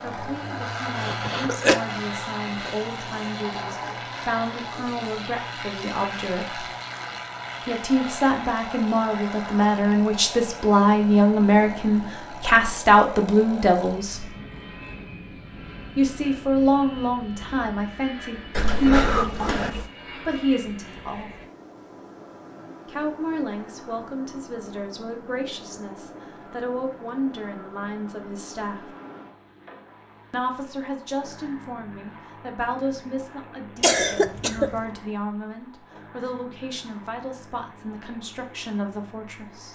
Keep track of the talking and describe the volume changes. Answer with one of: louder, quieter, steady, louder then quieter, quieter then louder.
louder then quieter.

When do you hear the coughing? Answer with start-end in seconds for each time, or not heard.
0.9-1.8, 18.6-19.9, 33.8-34.9.